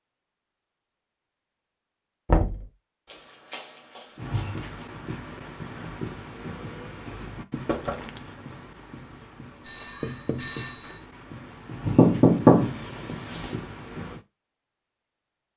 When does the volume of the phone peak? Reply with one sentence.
The volume of the phone peaks at 11 seconds.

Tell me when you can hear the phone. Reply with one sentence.
You can hear the phone from 3.0 to 4.8 s and from 9.6 to 11.0 s.